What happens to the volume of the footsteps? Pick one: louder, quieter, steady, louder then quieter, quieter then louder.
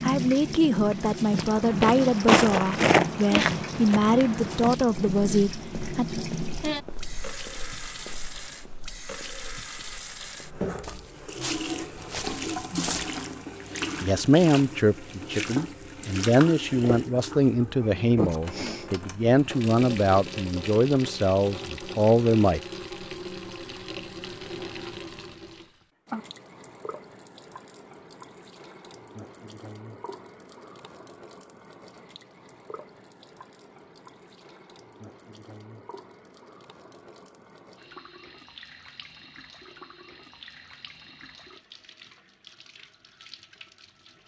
quieter then louder.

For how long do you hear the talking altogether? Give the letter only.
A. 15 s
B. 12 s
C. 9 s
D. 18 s
A.